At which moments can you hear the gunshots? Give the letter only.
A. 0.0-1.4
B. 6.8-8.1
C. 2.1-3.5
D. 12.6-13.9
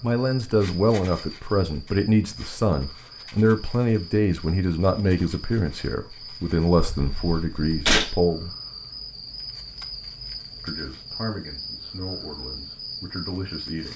B.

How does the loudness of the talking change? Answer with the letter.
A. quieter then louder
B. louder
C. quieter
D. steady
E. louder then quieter
C.